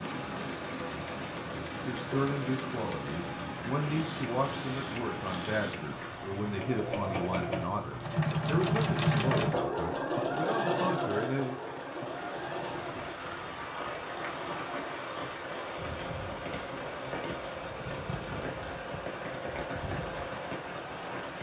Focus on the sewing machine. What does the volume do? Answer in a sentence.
The loudness of the sewing machine goes up, then down.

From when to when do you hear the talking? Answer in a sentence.
The talking can be heard from 1.8 to 11.6 s.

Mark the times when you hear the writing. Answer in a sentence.
The writing can't be heard in this clip.